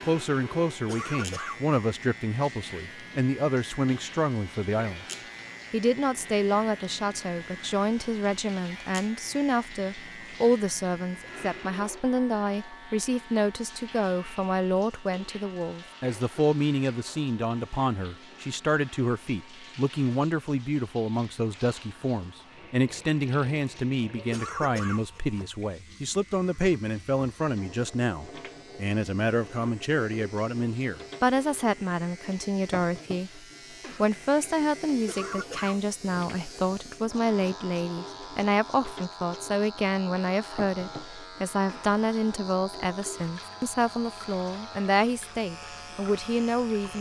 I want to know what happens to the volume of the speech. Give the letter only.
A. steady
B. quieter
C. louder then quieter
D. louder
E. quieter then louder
A.